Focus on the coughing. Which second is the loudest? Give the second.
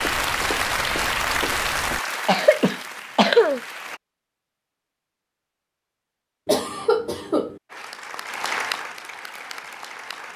3 s.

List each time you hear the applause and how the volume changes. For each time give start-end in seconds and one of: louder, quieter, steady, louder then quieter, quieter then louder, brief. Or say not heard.
0.0-4.0 quieter
7.7-10.3 brief.